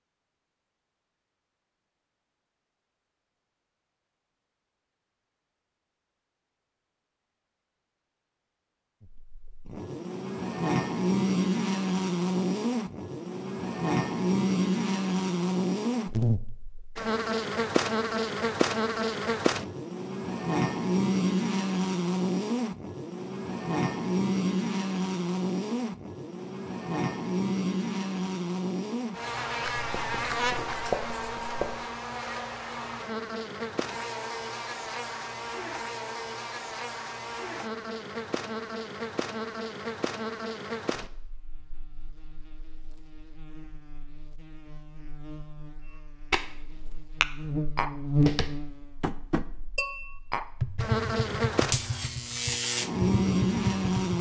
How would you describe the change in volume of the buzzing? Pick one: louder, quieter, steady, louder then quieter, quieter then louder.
quieter then louder.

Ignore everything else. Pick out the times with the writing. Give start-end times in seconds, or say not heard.
29.6-31.8.